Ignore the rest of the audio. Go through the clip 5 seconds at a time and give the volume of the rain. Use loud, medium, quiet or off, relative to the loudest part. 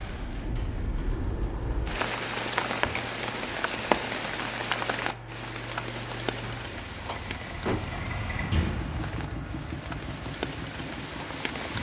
loud, medium, medium.